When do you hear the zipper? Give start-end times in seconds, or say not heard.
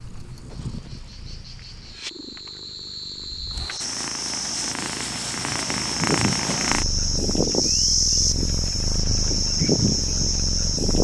not heard.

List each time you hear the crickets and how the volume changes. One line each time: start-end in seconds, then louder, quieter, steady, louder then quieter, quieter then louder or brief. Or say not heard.
0.0-10.9 louder.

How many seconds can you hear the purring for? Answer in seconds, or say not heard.
11 s.